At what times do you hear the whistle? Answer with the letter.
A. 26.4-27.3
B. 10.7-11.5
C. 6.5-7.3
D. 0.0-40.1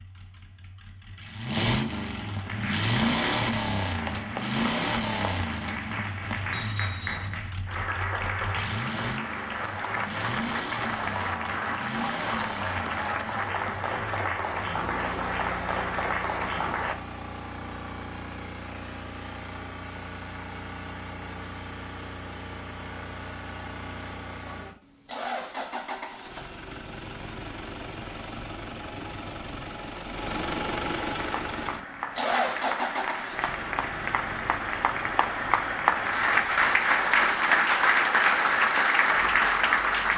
C.